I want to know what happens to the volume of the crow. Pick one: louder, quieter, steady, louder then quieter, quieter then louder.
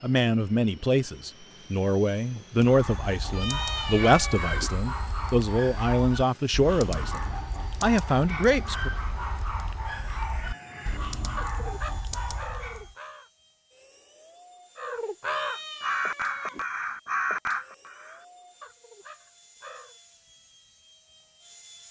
louder then quieter.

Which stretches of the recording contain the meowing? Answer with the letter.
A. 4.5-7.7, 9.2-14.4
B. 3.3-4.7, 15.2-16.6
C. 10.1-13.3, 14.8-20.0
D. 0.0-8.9
B.